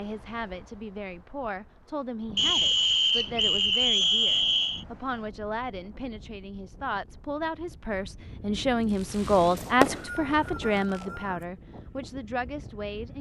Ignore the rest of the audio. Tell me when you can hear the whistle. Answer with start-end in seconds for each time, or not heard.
2.4-4.8, 9.6-11.4.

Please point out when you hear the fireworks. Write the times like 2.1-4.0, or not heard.
8.9-11.1.